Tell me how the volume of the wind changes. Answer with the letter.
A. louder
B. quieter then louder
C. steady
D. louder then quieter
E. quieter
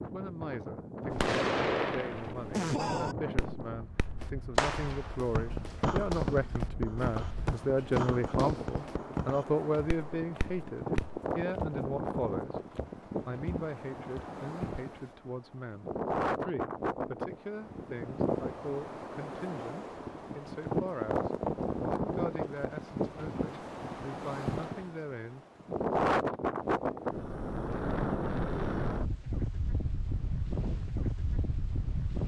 A.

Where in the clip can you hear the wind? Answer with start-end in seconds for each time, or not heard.
0.0-32.2.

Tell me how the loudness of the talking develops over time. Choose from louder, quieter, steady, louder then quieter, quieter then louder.
louder then quieter.